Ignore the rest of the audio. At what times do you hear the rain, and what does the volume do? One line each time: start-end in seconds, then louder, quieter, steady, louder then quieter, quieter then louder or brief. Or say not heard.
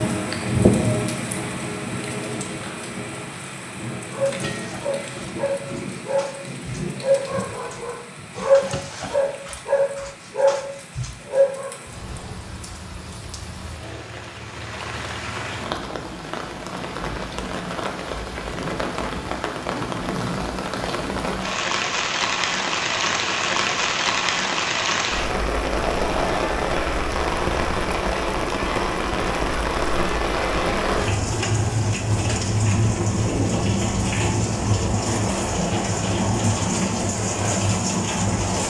0.0-38.6 quieter then louder.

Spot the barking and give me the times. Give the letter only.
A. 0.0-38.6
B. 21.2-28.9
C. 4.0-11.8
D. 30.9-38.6
C.